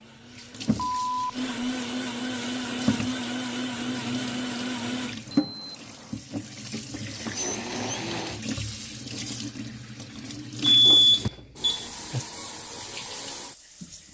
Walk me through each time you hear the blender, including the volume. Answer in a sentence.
You can hear the blender from 0.0 to 5.2 s, getting louder; and briefly from 7.1 to 8.4 s.